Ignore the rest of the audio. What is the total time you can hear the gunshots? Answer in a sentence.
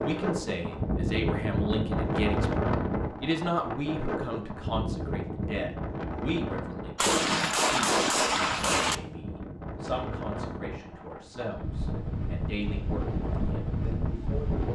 The gunshots can be heard for 2 seconds in total.